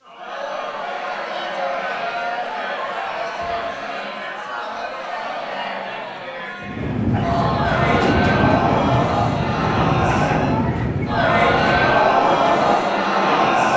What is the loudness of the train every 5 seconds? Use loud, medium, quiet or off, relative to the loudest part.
off, loud, loud.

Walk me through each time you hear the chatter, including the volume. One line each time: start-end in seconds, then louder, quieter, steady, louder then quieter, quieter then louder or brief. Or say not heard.
0.0-13.7 louder.